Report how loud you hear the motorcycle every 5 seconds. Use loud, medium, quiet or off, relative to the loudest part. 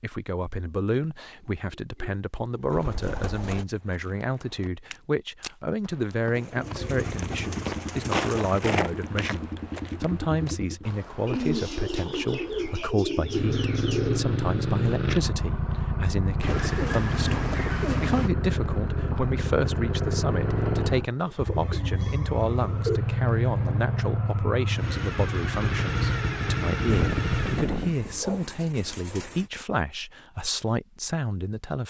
off, medium, loud, loud, loud, loud, off.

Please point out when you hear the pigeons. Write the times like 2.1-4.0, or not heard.
1.1-3.6, 6.3-8.7, 11.2-14.2, 16.4-18.3, 21.2-23.0, 26.9-29.5.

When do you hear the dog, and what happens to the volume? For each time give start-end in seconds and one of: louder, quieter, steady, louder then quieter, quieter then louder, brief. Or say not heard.
not heard.